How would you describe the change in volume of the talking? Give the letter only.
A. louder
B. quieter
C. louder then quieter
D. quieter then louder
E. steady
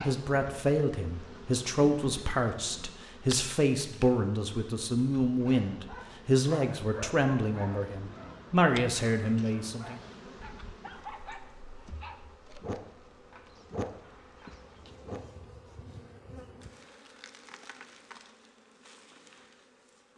E.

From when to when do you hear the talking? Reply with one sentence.
The talking can be heard from 0.0 to 10.0 s.